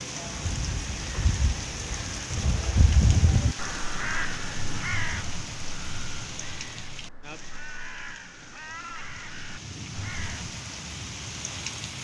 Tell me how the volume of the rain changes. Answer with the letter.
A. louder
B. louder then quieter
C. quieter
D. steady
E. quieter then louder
E.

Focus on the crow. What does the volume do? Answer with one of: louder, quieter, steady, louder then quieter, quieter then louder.
louder then quieter.